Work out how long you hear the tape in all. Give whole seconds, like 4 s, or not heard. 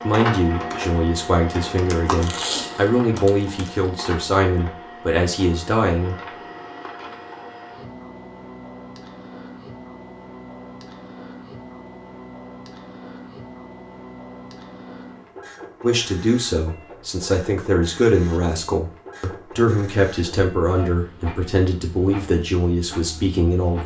2 s.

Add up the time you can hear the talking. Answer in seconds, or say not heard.
14 s.